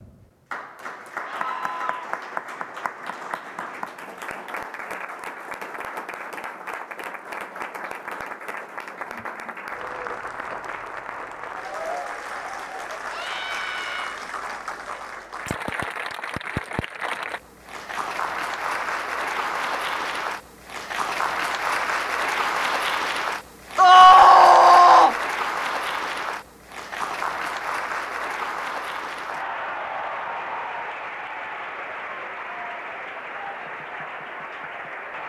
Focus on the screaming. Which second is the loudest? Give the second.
24 s.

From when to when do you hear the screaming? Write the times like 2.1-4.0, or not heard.
1.2-2.1, 13.1-14.2, 23.8-25.1.